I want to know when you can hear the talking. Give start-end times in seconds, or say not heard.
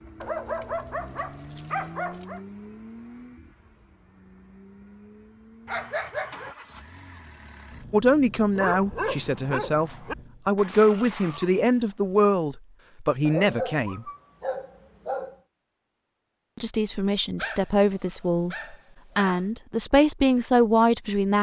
7.9-14.1, 16.6-21.3.